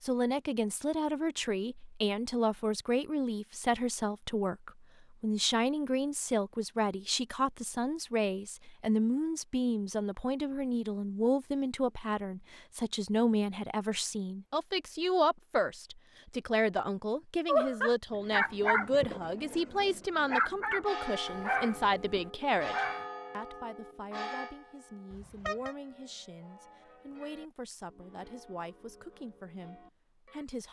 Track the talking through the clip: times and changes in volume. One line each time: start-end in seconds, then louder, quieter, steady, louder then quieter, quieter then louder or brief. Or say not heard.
0.0-30.6 quieter.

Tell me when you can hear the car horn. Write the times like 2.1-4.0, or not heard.
25.1-25.8.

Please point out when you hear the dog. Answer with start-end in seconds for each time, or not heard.
17.4-23.1.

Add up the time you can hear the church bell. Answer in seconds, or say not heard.
10 s.